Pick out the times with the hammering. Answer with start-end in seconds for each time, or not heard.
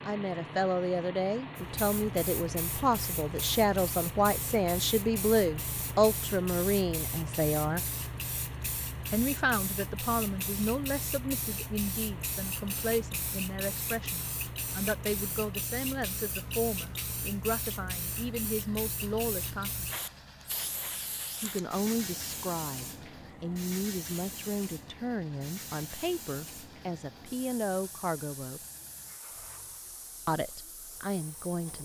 not heard.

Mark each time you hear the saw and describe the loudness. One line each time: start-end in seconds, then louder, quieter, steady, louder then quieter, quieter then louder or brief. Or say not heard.
not heard.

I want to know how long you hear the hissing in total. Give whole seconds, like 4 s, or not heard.
30 s.